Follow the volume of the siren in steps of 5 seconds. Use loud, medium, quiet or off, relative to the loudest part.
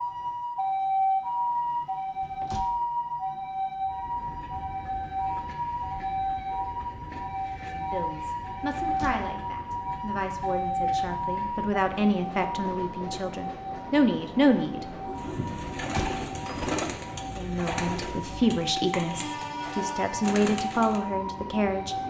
loud, loud, loud, medium, medium.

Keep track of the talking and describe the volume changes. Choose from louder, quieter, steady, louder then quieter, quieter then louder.
louder.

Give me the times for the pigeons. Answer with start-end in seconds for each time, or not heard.
15.2-21.0.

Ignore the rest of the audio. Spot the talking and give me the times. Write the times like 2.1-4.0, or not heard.
7.7-14.8, 17.4-21.9.